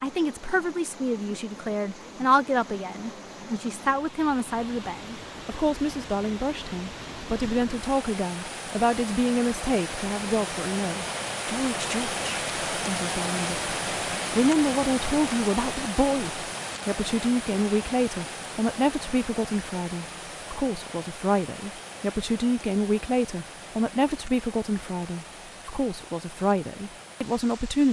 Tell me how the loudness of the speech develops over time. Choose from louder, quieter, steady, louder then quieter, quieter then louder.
steady.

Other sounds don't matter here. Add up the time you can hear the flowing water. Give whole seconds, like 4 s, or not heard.
28 s.